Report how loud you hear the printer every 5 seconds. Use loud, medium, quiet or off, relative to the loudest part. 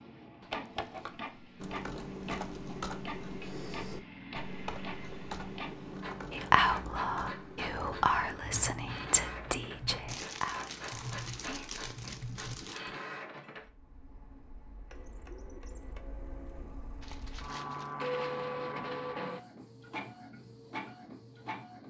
medium, medium, medium, loud, medium.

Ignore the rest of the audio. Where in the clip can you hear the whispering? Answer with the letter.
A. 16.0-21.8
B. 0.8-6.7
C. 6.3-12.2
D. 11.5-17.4
C.